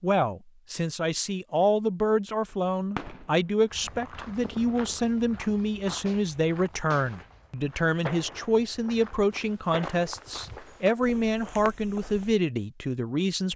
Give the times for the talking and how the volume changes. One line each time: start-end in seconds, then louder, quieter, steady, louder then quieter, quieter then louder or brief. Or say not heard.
0.0-13.5 steady.